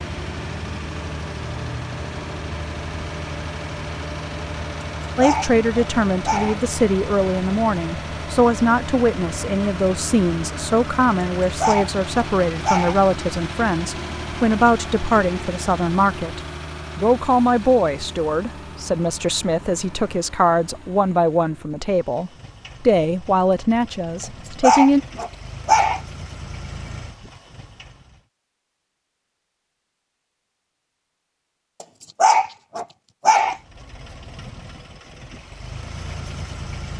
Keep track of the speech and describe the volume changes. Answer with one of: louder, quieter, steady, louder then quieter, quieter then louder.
steady.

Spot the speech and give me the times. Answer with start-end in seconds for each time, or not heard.
5.2-25.0.